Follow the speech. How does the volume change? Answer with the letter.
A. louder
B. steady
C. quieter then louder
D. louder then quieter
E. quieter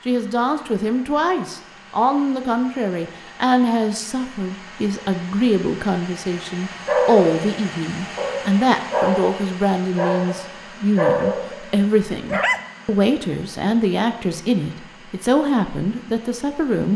B.